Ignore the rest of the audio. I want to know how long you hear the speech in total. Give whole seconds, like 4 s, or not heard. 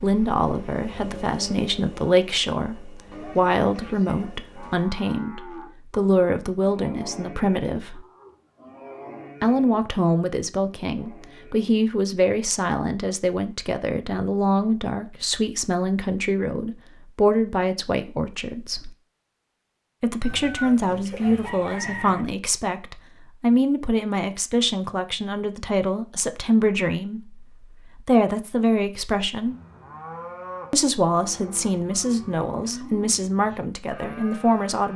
31 s.